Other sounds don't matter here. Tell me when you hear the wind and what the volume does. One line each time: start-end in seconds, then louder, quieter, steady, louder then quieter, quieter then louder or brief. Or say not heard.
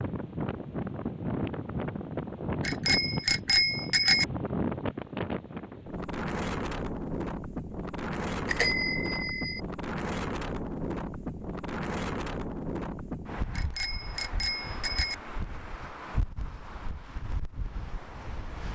0.0-18.7 quieter.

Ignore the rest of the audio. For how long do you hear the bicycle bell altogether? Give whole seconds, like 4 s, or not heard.
4 s.